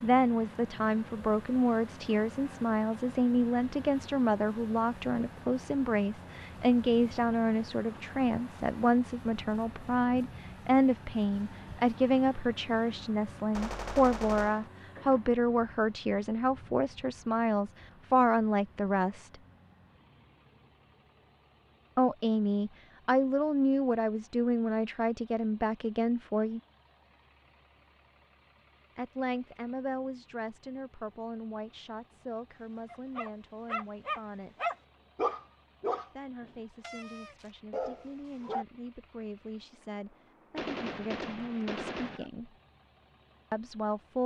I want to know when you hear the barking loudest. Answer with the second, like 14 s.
35 s.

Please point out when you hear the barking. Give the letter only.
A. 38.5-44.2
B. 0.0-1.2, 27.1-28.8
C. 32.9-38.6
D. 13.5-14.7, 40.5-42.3
C.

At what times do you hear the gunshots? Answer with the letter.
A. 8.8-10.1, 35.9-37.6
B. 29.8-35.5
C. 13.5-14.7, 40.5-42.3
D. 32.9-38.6
C.